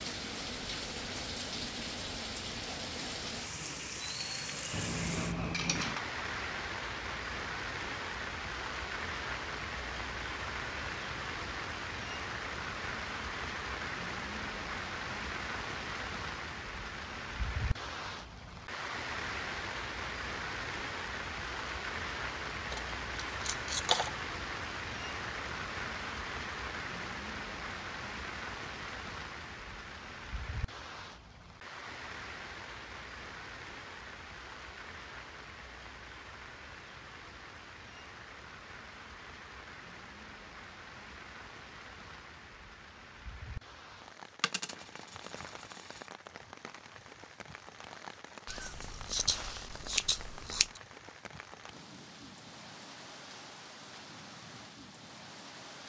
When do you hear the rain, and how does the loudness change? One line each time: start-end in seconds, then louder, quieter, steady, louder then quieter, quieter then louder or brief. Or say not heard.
0.0-55.8 quieter.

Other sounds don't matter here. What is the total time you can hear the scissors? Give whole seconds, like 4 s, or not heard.
2 s.